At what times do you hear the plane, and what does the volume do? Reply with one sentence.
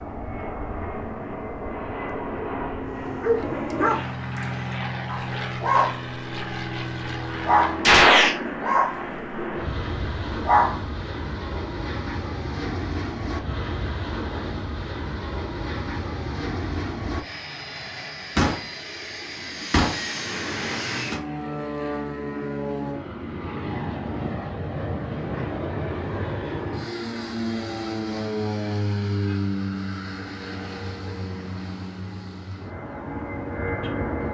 The plane can be heard from 0.0 to 34.2 s, at a steady volume.